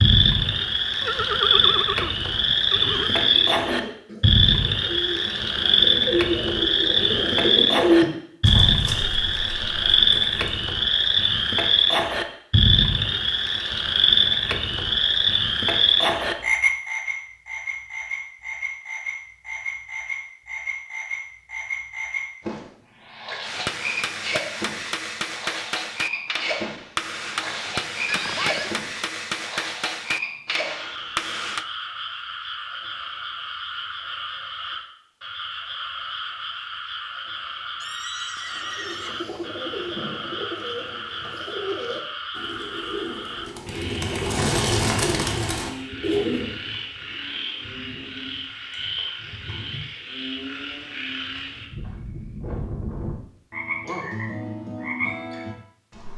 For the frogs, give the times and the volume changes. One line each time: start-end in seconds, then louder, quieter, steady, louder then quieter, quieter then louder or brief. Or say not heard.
0.0-56.1 quieter.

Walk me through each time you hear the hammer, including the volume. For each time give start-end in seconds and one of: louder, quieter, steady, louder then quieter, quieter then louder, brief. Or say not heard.
23.4-31.6 steady.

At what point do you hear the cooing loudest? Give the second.
8 s.